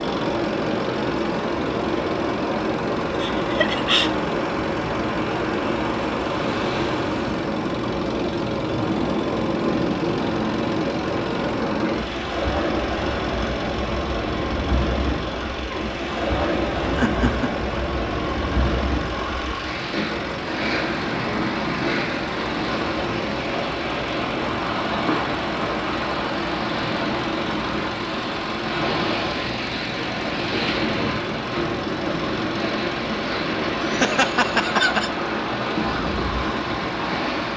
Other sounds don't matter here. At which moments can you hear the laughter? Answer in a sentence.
The laughter can be heard from 3.2 to 4.1 s, from 16.9 to 17.5 s and from 33.8 to 35.1 s.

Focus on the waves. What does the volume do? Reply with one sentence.
The loudness of the waves stays about the same.